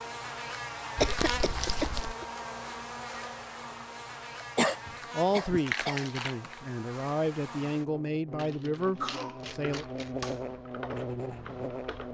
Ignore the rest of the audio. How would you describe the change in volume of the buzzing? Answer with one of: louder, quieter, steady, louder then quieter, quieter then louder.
quieter then louder.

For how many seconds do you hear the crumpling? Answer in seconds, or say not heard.
4 s.